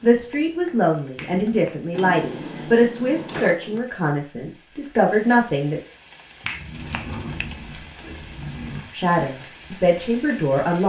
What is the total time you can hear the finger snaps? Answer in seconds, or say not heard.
2 s.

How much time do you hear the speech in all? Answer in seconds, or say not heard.
8 s.